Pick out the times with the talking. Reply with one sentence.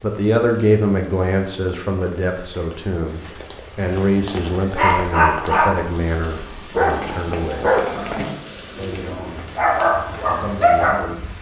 You can hear the talking from 0.0 to 7.7 s, from 8.8 to 9.4 s and from 10.2 to 11.3 s.